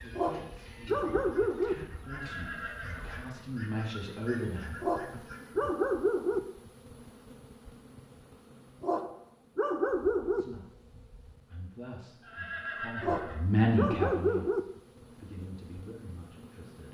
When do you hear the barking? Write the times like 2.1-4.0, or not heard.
0.1-1.8, 4.8-6.4, 8.8-10.4, 13.0-14.6.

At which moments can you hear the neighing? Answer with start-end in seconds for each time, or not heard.
2.0-3.2, 12.2-13.4.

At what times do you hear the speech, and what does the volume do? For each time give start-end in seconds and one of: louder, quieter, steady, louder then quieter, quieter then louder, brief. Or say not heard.
0.0-5.0 louder
10.3-16.8 louder then quieter.